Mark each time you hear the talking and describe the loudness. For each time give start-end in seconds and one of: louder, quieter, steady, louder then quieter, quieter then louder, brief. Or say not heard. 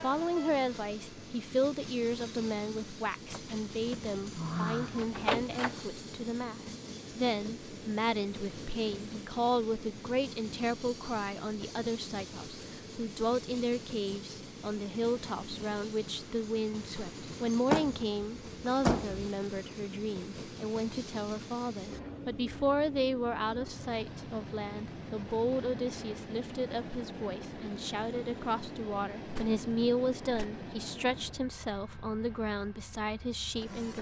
0.0-33.9 steady.